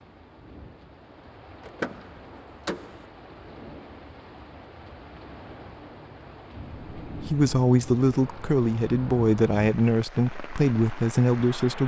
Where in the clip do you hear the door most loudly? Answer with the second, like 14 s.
2 s.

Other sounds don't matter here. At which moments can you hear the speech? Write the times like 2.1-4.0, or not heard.
6.7-11.8.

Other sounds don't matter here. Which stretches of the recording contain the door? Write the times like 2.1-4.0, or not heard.
1.6-3.0.